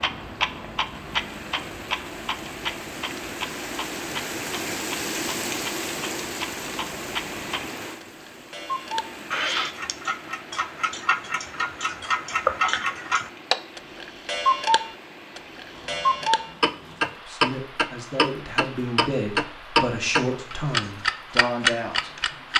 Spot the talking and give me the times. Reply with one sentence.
You can hear the talking from 17.1 to 22.1 s.